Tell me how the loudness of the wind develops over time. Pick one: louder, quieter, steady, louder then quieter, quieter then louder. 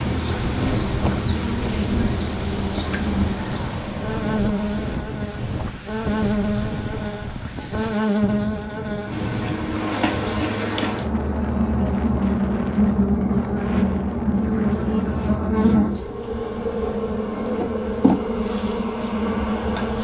quieter.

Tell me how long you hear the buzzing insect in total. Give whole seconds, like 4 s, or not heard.
20 s.